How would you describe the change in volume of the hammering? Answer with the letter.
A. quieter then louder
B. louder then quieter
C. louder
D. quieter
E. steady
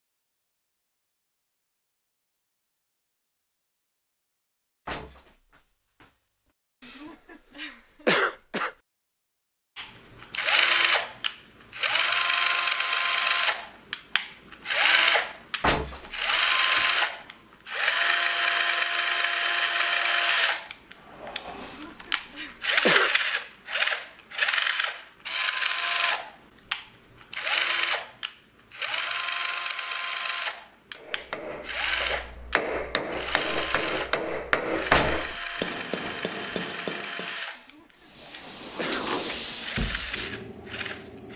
B.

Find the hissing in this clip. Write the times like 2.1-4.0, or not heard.
37.9-41.3.